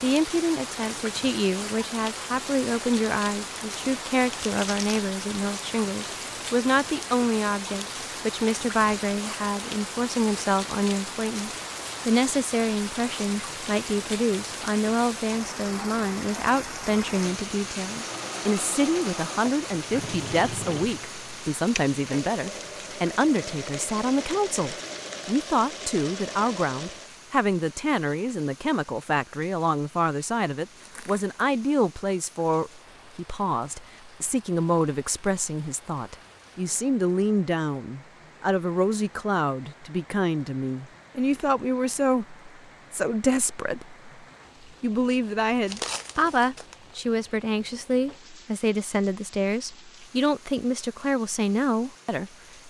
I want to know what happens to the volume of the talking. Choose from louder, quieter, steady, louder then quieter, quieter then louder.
steady.